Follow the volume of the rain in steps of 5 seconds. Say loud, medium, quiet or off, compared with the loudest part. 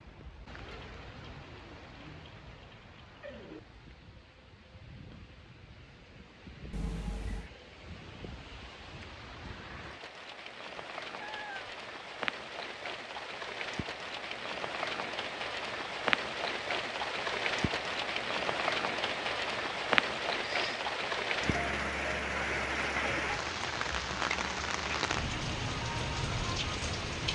quiet, quiet, medium, loud, loud, loud.